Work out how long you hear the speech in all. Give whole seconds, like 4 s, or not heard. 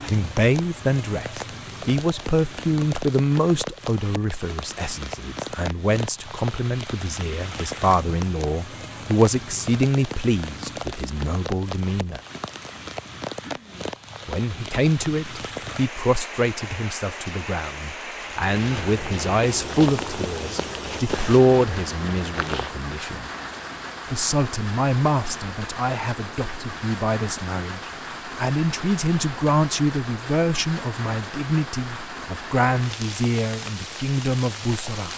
32 s.